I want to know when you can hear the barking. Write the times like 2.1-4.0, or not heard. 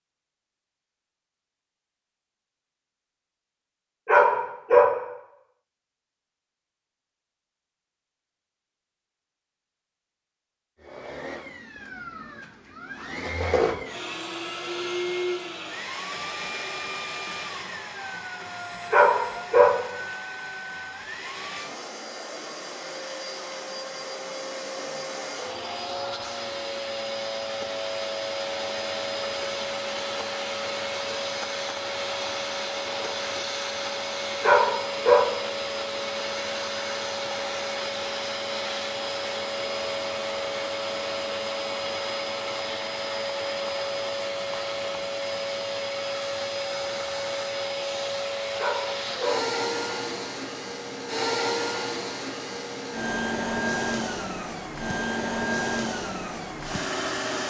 4.0-4.9, 18.9-19.8, 34.4-35.2, 48.5-49.4.